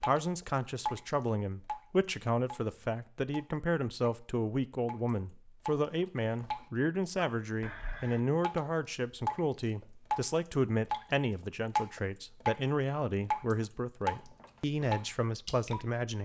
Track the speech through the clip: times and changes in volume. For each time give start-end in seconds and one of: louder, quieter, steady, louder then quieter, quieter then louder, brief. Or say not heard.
0.0-16.2 steady.